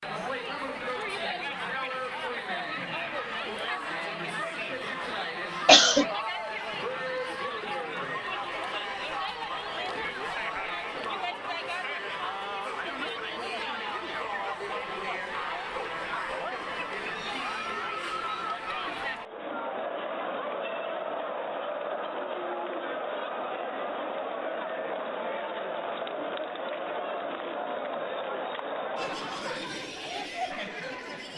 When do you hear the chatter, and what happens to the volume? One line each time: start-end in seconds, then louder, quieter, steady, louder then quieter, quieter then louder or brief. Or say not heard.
0.0-31.3 steady.